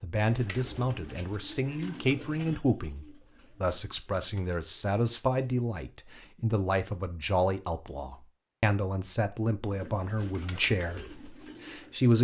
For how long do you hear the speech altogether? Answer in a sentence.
You can hear the speech for 12 seconds altogether.